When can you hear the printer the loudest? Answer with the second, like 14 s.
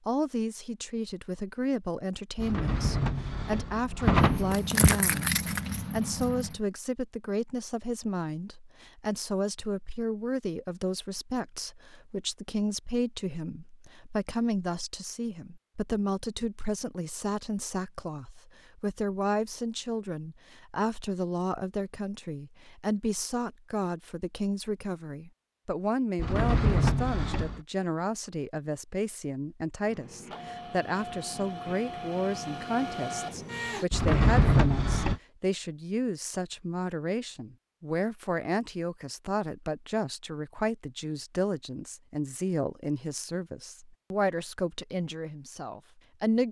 33 s.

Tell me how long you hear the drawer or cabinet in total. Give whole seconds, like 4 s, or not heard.
5 s.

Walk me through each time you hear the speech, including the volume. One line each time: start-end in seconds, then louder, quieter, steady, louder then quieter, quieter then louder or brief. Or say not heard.
0.1-46.4 steady.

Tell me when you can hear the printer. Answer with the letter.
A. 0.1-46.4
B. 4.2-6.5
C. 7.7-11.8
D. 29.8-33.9
D.